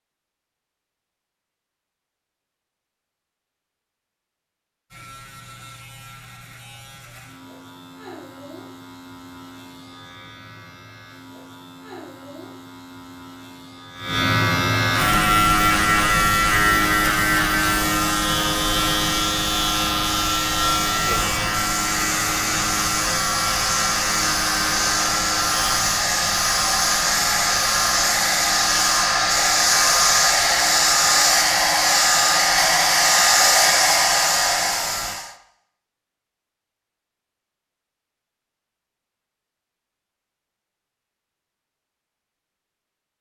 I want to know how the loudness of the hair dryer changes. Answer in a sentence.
The loudness of the hair dryer goes up.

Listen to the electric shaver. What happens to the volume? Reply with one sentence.
The volume of the electric shaver goes up, then down.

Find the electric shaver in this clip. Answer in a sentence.
You can hear the electric shaver from 4.9 to 35.1 s.